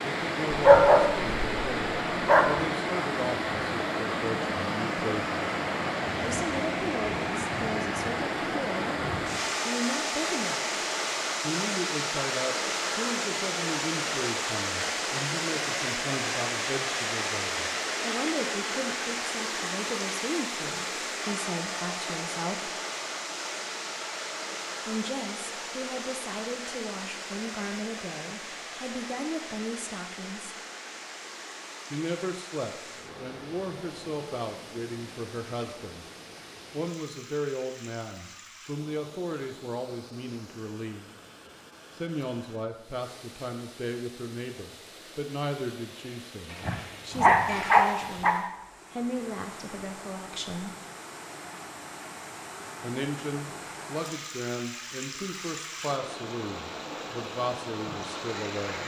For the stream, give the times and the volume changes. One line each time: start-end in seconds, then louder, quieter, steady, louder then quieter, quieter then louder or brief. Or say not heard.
0.0-58.8 quieter then louder.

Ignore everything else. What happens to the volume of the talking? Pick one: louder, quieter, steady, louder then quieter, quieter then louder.
steady.